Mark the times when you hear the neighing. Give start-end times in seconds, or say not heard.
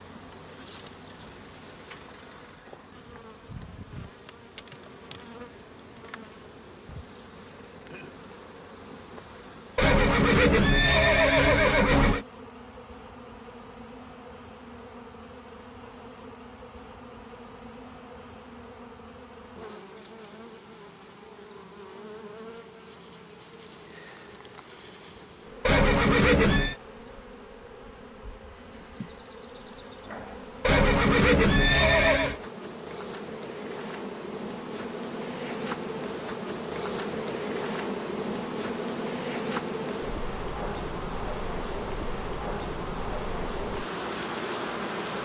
9.8-12.2, 25.6-26.8, 30.6-32.4.